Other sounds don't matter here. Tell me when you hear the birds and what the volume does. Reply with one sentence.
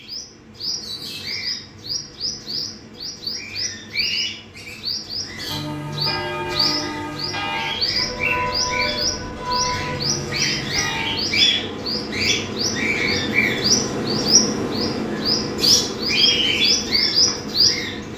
The birds can be heard from 0.0 to 18.1 s, getting louder.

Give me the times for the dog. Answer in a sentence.
The dog can't be heard in this clip.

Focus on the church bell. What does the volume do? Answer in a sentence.
The loudness of the church bell goes down.